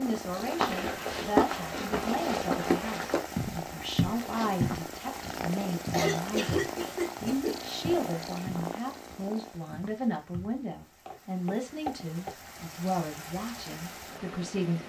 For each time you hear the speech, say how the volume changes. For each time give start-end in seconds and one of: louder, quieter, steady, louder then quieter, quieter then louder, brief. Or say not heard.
0.0-14.8 steady.